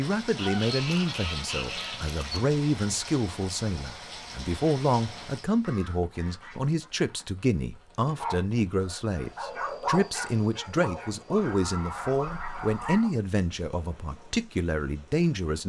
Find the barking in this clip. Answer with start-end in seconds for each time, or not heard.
8.2-13.1.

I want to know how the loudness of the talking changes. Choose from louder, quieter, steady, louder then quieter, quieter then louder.
steady.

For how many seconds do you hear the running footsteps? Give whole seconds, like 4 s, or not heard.
not heard.